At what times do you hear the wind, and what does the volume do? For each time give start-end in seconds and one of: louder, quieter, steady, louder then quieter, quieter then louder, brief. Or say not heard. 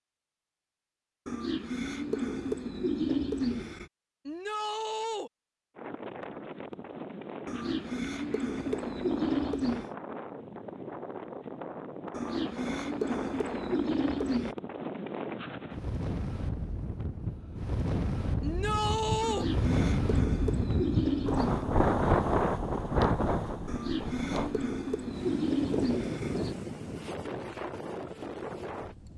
5.8-29.1 louder then quieter.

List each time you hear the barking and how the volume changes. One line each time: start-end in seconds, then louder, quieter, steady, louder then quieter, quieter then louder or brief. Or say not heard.
not heard.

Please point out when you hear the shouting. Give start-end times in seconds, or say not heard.
4.2-5.3, 18.4-19.4.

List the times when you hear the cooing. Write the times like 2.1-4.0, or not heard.
1.2-3.9, 7.5-9.9, 12.1-14.6, 19.2-21.6, 23.6-26.6.